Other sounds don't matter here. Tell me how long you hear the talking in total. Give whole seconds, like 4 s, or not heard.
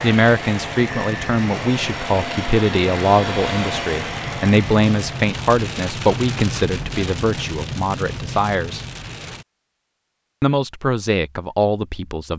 11 s.